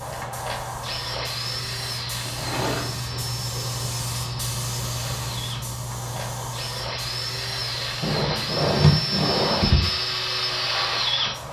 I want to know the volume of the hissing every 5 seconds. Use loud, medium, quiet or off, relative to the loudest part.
loud, loud, medium.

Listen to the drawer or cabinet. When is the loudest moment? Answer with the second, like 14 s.
9 s.